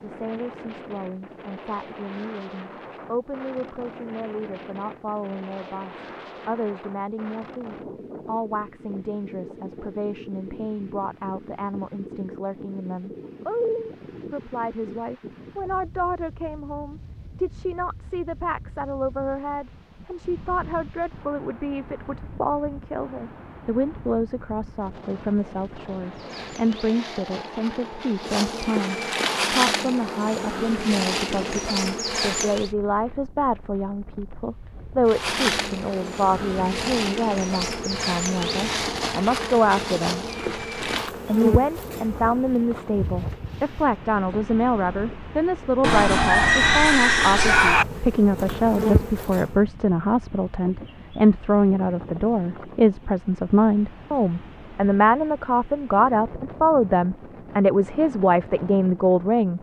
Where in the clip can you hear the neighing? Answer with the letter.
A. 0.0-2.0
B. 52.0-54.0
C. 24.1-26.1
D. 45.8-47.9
D.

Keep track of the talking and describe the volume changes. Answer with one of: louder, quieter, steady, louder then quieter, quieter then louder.
louder.